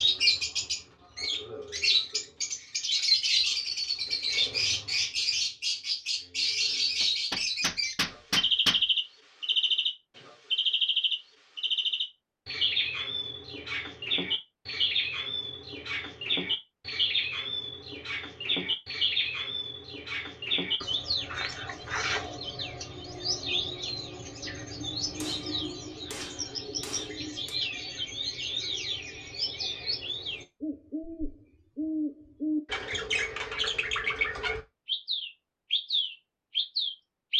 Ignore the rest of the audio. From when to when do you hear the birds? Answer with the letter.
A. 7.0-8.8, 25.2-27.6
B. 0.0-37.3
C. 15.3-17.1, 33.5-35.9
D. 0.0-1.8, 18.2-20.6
B.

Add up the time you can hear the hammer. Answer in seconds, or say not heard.
4 s.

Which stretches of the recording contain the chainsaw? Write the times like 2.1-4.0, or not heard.
not heard.